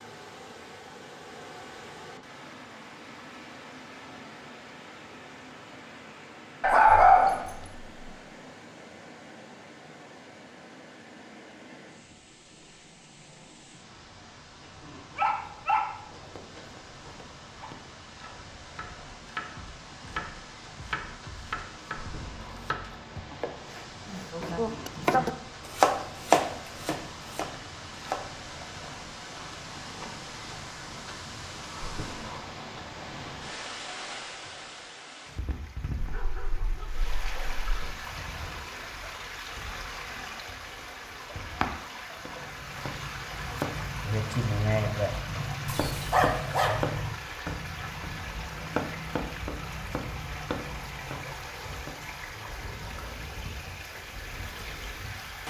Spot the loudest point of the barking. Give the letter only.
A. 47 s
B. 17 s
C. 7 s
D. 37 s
C.